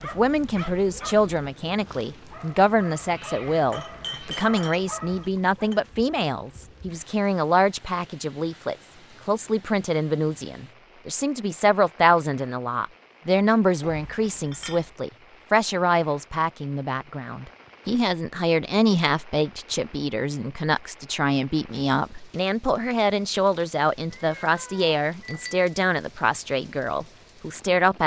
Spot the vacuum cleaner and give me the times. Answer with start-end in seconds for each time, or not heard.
not heard.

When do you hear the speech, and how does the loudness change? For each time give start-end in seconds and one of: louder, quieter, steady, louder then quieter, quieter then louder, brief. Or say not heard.
0.0-28.0 steady.